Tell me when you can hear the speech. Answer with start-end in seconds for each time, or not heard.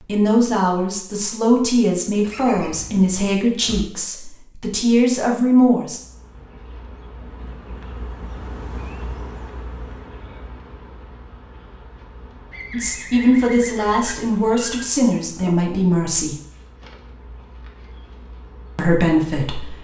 0.1-6.0, 12.7-16.4, 18.8-19.8.